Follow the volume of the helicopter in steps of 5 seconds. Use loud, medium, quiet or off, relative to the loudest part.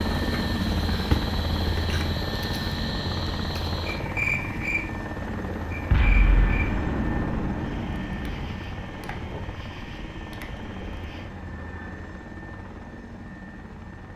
loud, medium, medium.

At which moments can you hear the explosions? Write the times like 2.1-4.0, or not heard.
5.9-8.6.